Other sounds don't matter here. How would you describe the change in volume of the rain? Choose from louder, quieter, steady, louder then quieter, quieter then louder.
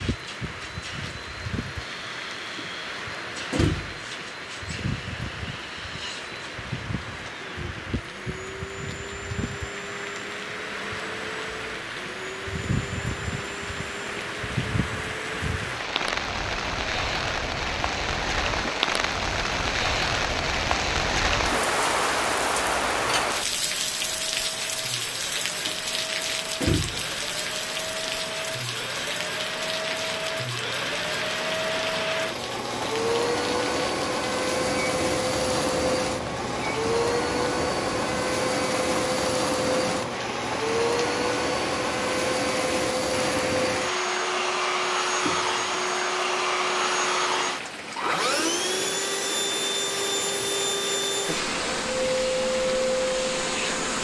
louder then quieter.